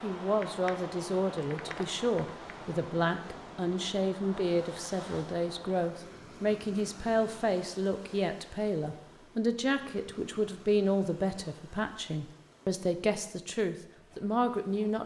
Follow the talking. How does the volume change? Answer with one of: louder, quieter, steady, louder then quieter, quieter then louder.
steady.